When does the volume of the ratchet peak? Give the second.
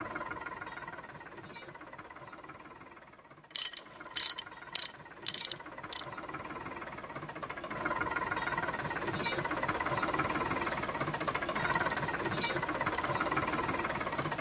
4 s.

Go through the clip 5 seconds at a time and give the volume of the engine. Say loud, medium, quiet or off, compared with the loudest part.
quiet, loud, loud.